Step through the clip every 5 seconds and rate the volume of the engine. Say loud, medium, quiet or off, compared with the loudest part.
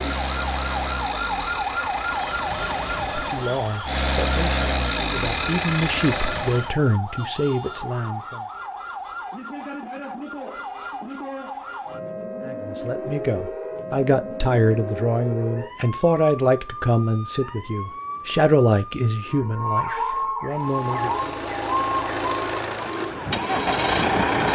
loud, loud, off, off, loud.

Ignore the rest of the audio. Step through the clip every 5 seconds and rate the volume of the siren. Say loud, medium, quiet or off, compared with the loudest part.
loud, medium, medium, medium, loud.